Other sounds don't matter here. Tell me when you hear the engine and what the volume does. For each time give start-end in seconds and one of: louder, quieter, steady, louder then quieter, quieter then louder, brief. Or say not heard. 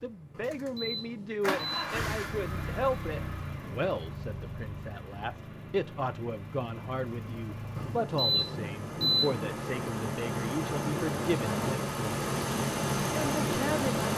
0.0-14.1 quieter then louder.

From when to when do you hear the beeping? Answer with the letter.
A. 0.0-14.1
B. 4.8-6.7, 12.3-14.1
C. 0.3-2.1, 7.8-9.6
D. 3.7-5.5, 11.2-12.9
C.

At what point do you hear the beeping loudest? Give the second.
9 s.